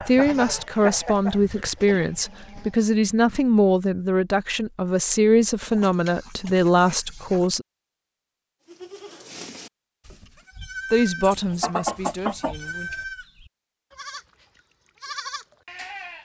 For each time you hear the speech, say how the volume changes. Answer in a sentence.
You can hear the speech from 0.1 to 7.7 s, at a steady volume; and briefly from 10.9 to 12.9 s.